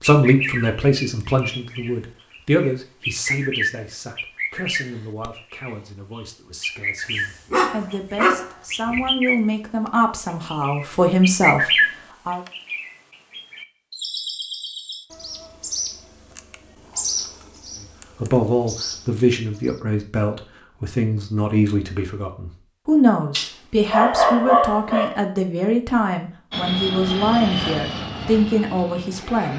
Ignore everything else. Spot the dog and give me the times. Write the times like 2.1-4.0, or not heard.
7.0-9.1, 23.3-25.1.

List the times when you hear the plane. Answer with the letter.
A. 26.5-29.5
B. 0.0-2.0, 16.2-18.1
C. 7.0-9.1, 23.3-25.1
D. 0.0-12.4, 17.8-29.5
A.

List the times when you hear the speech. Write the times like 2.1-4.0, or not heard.
0.0-12.4, 17.8-29.5.